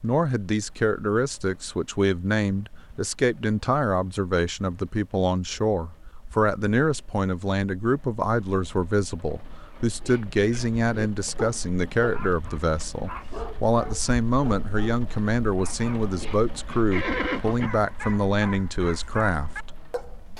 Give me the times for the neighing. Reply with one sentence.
The neighing can be heard from 16.9 to 17.7 s.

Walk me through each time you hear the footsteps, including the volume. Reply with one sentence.
You can't hear the footsteps here.